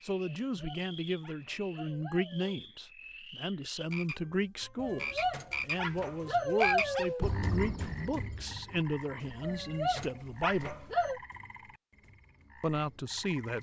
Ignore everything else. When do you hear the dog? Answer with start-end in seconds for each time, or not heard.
0.2-2.6, 4.8-7.2, 9.4-11.2.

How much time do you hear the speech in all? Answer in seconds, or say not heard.
12 s.